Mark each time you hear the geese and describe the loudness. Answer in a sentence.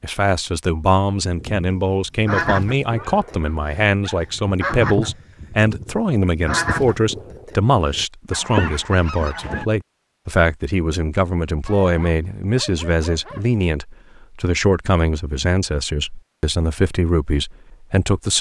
The geese can be heard from 1.2 to 9.7 s, getting quieter then louder.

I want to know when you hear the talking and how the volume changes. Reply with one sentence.
You can hear the talking from 0.0 to 18.3 s, at a steady volume.